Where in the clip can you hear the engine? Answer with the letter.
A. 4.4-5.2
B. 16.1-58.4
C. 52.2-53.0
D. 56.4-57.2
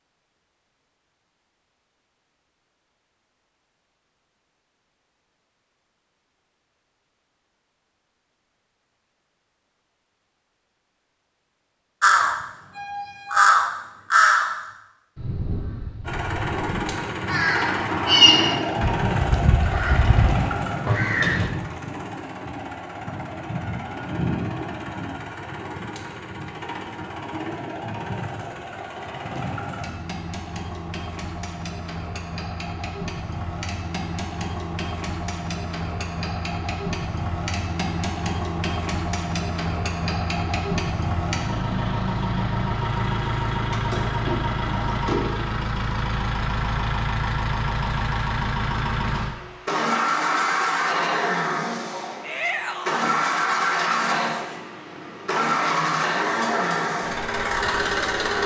B.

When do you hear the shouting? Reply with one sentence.
You can hear the shouting from 52.2 to 53.0 s.